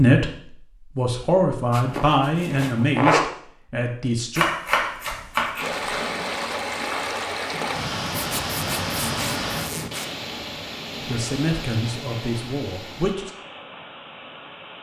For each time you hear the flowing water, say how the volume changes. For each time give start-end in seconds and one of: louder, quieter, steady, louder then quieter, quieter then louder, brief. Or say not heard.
5.5-14.7 quieter.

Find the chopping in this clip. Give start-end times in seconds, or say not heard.
4.3-5.7.